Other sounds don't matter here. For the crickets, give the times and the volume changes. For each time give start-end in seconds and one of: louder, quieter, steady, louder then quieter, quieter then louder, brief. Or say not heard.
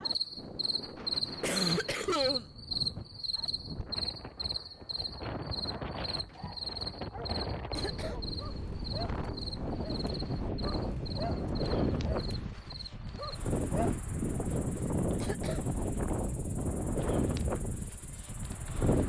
0.0-19.0 quieter.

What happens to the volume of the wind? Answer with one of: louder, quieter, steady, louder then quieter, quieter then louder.
louder.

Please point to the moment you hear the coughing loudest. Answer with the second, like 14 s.
2 s.